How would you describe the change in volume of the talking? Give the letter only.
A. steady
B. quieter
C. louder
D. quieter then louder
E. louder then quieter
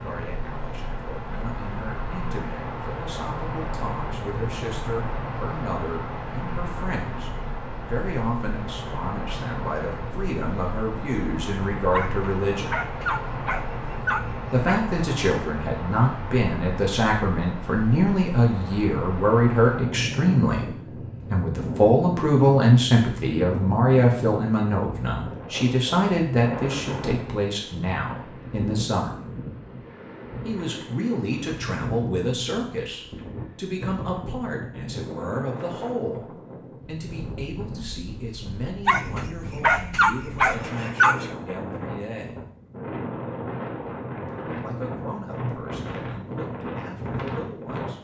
E.